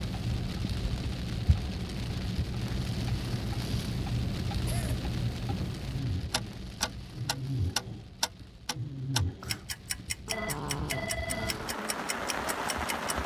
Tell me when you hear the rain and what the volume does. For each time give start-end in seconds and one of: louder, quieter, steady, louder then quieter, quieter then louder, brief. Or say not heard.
0.0-13.2 quieter then louder.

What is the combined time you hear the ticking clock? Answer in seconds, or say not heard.
13 s.